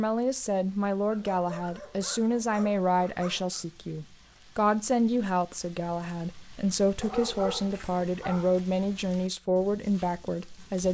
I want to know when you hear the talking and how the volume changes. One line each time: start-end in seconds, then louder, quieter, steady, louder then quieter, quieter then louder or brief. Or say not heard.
0.0-10.8 steady.